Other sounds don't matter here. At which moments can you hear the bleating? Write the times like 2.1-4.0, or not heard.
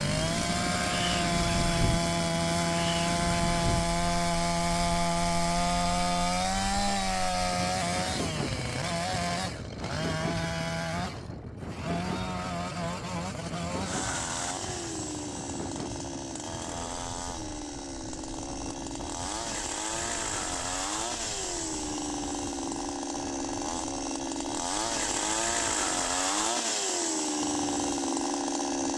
not heard.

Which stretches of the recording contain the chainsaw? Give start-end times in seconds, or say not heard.
0.0-28.9.